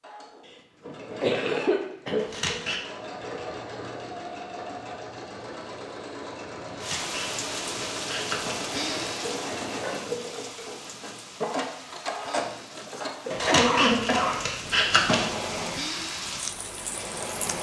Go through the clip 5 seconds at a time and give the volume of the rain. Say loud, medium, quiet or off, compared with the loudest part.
off, loud, medium, loud.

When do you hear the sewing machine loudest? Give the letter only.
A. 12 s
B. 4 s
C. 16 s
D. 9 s
A.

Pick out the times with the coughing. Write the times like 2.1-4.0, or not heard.
0.8-2.2, 13.2-14.4.